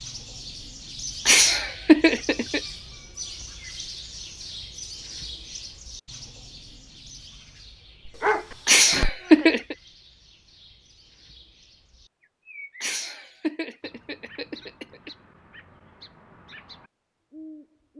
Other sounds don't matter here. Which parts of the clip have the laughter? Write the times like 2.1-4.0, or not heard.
1.2-2.6, 8.7-9.8, 12.8-15.1.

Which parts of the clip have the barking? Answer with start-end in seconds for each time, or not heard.
8.1-9.4.